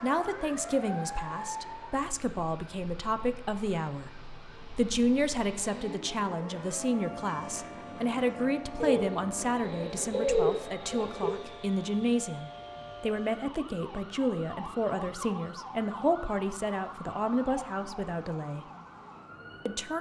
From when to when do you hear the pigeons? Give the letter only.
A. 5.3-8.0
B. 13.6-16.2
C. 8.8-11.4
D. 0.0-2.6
C.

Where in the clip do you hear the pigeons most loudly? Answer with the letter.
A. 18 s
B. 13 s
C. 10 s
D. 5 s
C.